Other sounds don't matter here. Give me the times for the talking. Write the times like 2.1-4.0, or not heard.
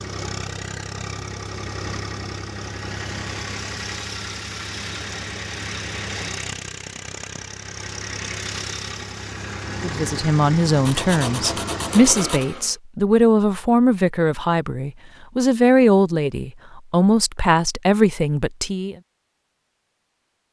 9.8-18.9.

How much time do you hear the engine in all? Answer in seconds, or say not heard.
13 s.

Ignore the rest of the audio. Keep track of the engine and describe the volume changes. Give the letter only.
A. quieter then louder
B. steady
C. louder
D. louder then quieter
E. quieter
B.